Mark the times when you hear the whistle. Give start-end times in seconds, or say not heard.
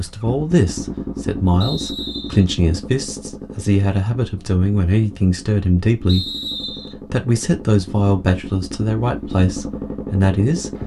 1.6-2.5, 6.0-7.0.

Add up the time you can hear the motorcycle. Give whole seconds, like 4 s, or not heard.
11 s.